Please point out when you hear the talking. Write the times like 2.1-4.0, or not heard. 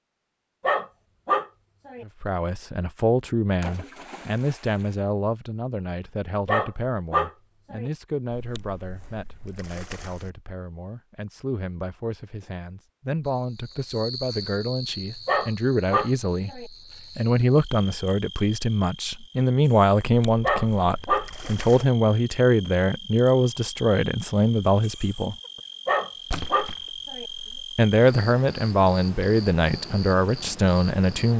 2.0-25.4, 27.6-31.3.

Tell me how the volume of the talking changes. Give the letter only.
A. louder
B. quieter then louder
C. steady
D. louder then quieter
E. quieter
B.